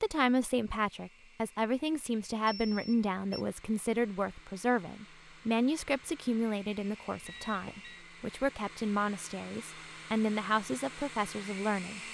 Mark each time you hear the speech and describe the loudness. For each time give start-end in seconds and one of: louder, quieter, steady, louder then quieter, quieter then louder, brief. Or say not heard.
0.0-12.0 steady.